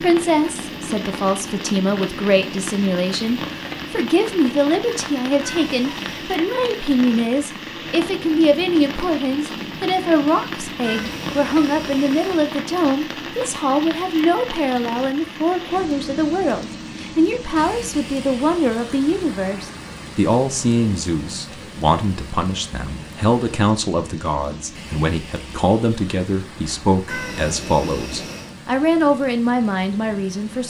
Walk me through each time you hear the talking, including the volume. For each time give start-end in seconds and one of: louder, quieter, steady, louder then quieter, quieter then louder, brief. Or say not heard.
0.0-30.6 steady.